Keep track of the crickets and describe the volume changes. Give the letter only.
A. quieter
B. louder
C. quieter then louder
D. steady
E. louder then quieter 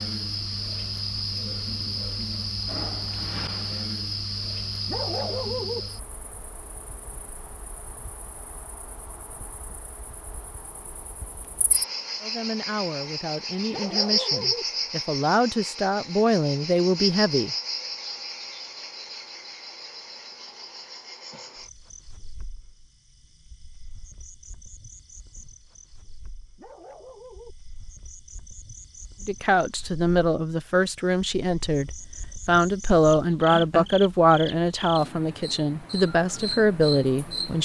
C.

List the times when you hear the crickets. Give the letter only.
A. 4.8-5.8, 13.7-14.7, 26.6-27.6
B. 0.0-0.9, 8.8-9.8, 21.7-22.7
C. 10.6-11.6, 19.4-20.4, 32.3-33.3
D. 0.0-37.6
D.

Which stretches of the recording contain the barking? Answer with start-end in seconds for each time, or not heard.
4.8-5.8, 13.7-14.7, 26.6-27.6.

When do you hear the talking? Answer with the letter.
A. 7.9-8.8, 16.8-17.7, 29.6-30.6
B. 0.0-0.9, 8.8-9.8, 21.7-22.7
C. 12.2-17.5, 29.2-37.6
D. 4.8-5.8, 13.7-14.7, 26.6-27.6
C.